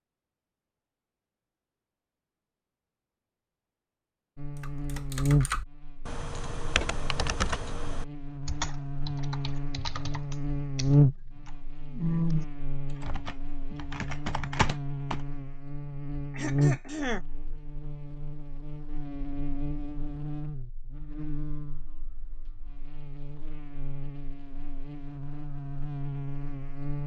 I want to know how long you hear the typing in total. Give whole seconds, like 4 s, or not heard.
11 s.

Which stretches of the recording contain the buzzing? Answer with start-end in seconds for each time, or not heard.
4.3-27.0.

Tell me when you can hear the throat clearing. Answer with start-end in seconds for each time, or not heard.
16.3-17.2.